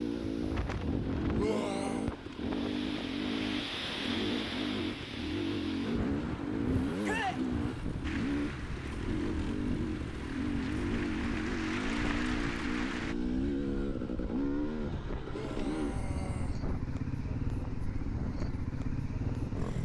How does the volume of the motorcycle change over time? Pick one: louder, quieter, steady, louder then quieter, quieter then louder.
steady.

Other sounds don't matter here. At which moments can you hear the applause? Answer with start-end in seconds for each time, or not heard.
8.0-13.2.